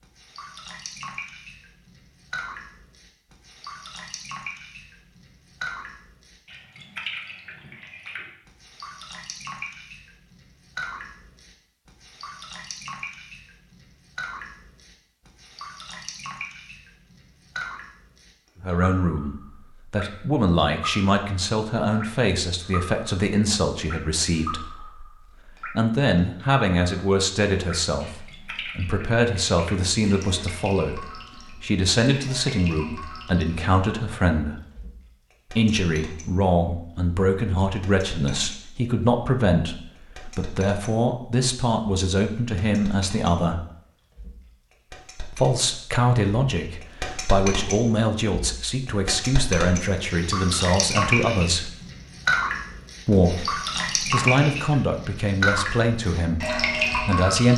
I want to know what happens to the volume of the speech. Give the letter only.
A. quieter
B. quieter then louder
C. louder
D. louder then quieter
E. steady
E.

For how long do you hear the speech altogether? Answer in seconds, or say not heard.
35 s.